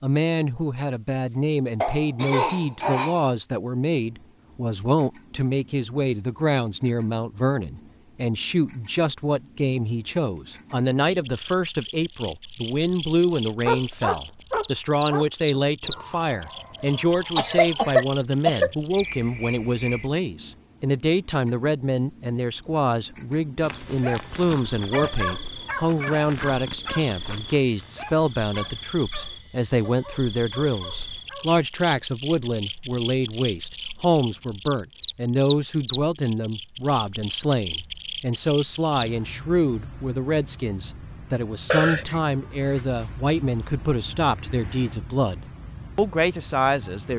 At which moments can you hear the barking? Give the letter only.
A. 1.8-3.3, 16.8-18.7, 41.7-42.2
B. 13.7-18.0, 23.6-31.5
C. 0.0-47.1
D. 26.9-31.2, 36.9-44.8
B.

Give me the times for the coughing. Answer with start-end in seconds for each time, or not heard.
1.8-3.3, 16.8-18.7, 41.7-42.2.